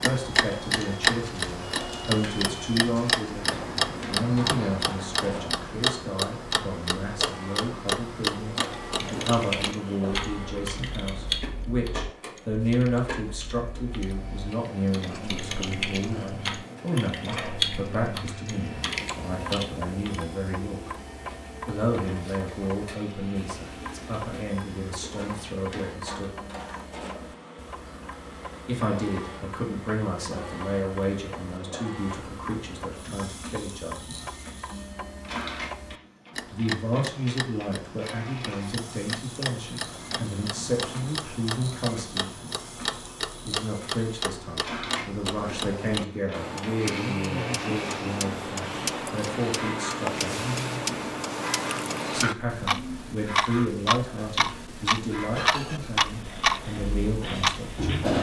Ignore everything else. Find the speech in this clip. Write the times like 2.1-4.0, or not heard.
0.0-20.9, 21.6-26.4, 28.6-34.1, 36.5-42.4, 43.5-50.5, 52.1-58.1.